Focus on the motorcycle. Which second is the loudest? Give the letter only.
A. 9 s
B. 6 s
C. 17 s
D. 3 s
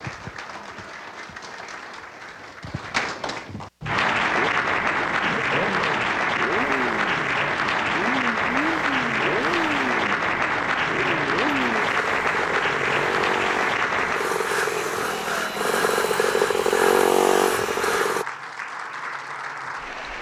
C.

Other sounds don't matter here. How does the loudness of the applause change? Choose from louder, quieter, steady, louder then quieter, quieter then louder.
louder then quieter.